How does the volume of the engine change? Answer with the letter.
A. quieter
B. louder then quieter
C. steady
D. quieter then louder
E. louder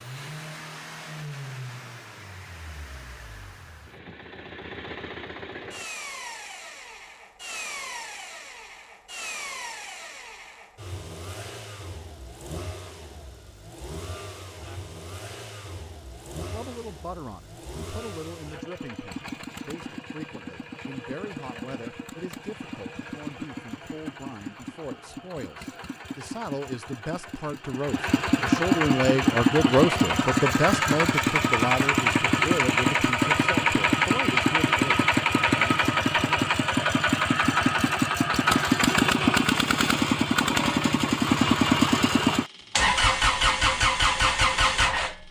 E.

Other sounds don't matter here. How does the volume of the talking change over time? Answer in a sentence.
The loudness of the talking goes up, then down.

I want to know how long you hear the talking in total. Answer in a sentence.
You can hear the talking for 20 seconds altogether.